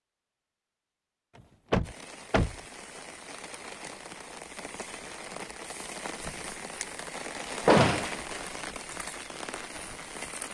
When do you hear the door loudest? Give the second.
8 s.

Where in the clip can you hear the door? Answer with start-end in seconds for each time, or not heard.
1.7-2.5, 7.7-8.2.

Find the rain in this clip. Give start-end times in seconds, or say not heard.
1.8-10.4.